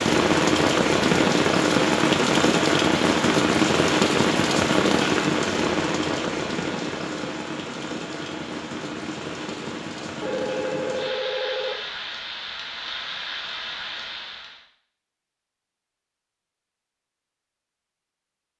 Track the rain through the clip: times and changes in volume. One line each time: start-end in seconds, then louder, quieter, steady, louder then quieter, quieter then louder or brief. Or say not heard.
0.0-14.7 quieter.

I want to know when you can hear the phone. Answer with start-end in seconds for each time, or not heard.
10.2-11.8.